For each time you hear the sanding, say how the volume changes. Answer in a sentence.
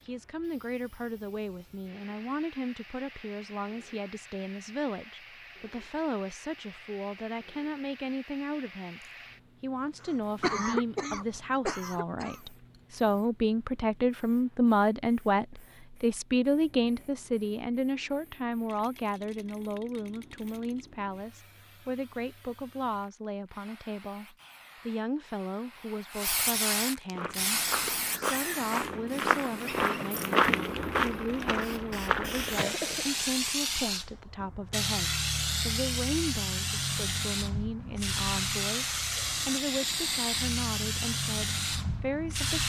The sanding can't be heard in this clip.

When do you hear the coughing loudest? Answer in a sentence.
The volume of the coughing peaks at 11 seconds.